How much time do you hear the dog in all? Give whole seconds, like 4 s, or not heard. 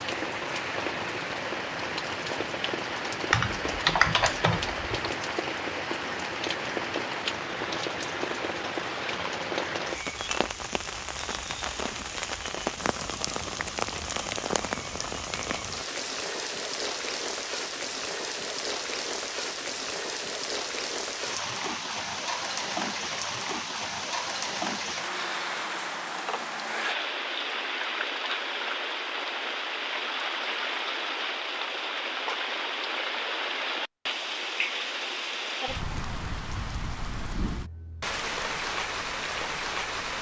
not heard.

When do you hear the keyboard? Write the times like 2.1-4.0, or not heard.
3.3-4.8.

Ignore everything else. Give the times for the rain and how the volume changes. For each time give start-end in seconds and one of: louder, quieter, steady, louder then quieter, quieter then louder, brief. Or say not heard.
0.0-40.1 steady.